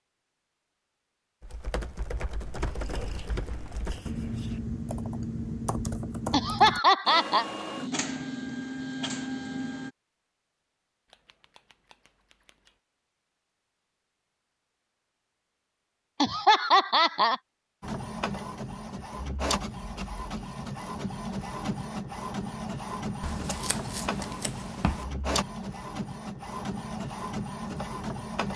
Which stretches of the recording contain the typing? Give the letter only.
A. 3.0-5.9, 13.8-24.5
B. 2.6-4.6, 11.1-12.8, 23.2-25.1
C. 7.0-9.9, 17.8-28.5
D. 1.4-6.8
D.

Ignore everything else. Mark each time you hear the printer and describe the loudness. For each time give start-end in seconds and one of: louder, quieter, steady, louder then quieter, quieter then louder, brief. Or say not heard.
7.0-9.9 brief
17.8-28.5 steady.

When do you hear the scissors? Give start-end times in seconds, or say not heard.
2.6-4.6, 11.1-12.8, 23.2-25.1.